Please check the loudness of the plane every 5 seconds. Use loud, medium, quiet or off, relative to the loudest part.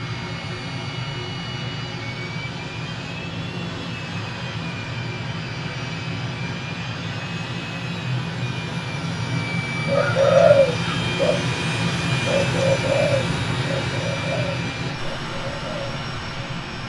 medium, loud, loud, medium.